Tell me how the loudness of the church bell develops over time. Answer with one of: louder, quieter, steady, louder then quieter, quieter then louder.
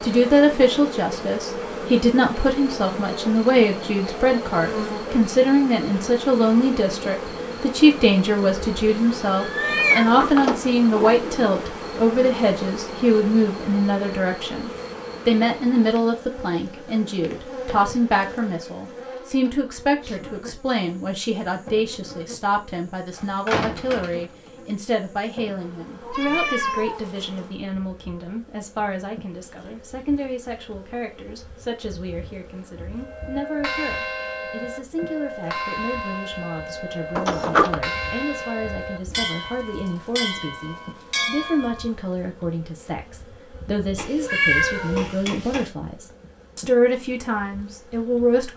steady.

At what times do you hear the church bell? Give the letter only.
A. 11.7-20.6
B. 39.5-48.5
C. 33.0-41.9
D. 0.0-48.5
C.